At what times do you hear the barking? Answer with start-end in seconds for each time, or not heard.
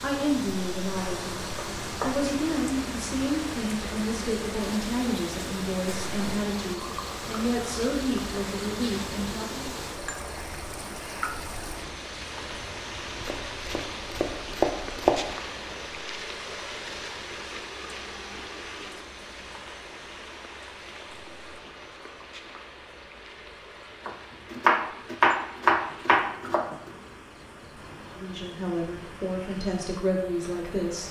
not heard.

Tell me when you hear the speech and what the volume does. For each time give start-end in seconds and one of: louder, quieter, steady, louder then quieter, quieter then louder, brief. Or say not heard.
0.0-9.8 steady
28.1-31.0 brief.